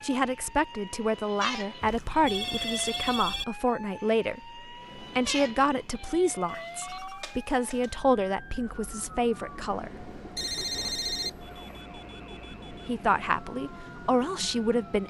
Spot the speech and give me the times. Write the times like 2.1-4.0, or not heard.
0.0-10.1, 12.5-15.0.